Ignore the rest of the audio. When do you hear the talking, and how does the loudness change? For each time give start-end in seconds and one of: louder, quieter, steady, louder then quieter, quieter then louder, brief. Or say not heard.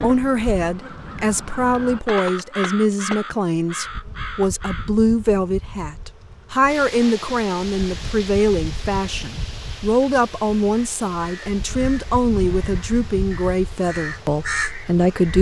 0.0-15.3 steady.